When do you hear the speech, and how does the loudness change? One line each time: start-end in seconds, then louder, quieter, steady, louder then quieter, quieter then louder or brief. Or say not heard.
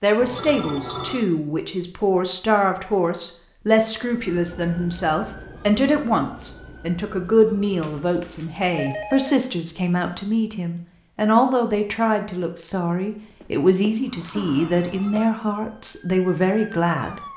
0.0-17.2 steady.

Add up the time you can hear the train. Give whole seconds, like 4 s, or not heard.
not heard.